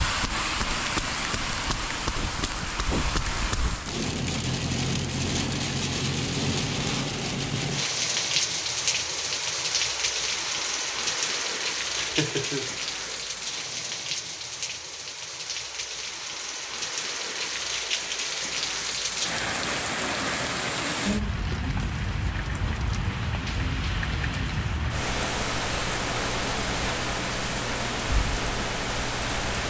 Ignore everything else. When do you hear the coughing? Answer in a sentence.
The coughing can be heard from 11.9 to 13.3 s.